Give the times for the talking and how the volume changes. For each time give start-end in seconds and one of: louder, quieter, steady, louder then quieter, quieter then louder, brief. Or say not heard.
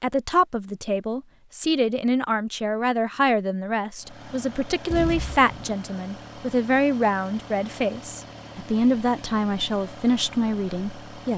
0.0-11.3 steady.